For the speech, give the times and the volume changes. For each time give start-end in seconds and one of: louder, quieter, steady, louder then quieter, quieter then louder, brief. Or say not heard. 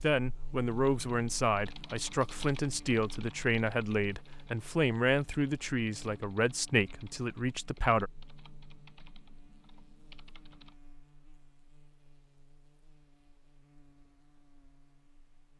0.0-8.1 steady.